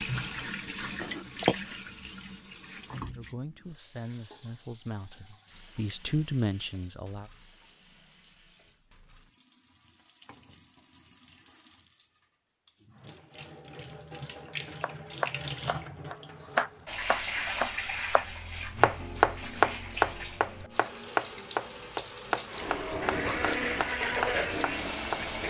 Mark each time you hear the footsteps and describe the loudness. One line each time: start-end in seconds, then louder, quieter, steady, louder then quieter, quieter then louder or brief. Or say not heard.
not heard.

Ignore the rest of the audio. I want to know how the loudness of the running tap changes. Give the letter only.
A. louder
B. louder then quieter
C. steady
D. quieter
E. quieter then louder
E.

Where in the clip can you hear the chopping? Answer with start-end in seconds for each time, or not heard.
14.4-25.2.